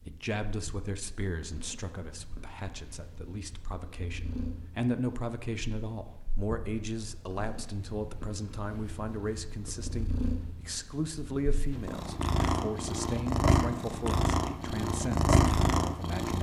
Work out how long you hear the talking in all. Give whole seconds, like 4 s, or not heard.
16 s.